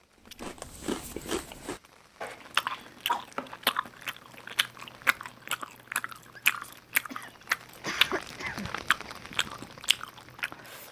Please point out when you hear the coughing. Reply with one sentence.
You can hear the coughing from 2.2 to 3.2 s and from 7.0 to 9.1 s.